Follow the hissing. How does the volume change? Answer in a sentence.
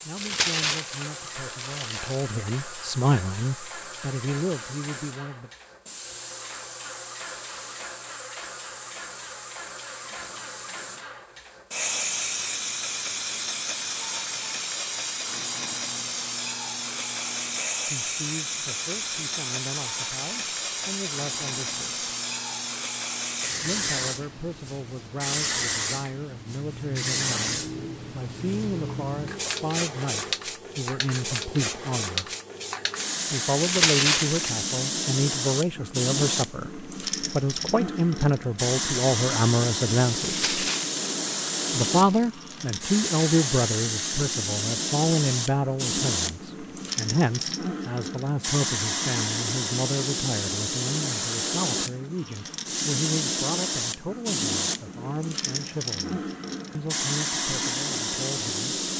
The loudness of the hissing goes up.